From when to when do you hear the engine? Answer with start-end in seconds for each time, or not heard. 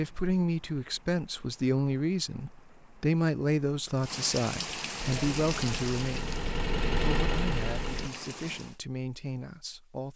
5.0-8.1.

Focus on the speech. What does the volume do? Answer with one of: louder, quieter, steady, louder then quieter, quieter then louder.
quieter.